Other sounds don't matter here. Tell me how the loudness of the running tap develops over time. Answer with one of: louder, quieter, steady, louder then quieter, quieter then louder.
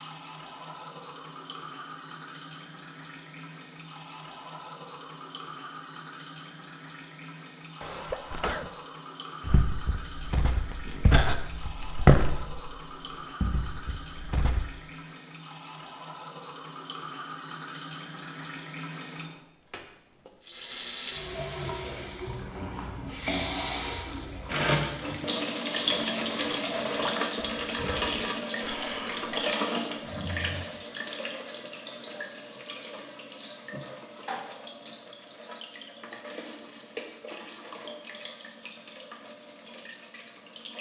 louder then quieter.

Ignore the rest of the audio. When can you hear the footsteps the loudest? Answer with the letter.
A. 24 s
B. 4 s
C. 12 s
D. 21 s
C.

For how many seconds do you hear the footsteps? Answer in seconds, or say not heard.
5 s.